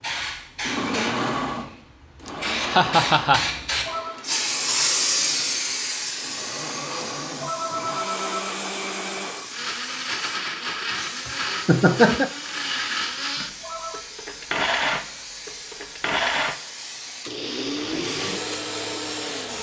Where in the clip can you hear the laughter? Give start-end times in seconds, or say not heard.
2.2-3.5, 11.2-12.3.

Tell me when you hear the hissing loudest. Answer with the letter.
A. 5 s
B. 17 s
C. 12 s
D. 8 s
A.